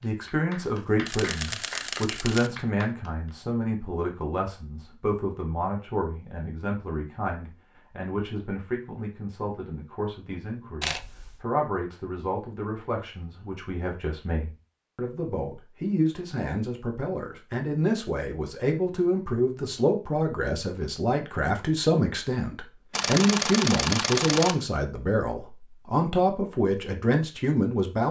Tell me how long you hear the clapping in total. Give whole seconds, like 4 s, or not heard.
3 s.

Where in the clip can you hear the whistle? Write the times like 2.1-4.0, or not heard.
not heard.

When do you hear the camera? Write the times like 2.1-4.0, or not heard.
0.6-2.5, 10.8-11.4, 22.9-24.6.